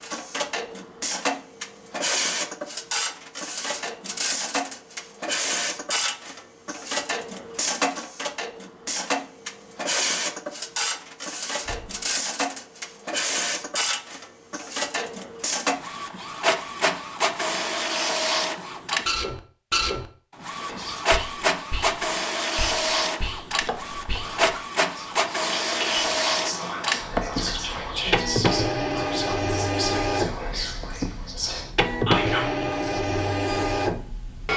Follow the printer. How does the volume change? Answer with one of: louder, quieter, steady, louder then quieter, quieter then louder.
steady.